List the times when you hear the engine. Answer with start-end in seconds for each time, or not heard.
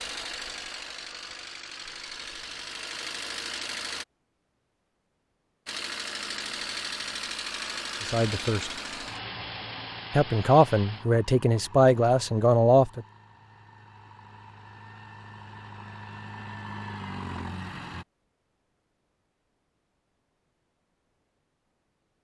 0.0-4.0, 5.7-18.1.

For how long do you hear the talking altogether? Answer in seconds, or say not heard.
4 s.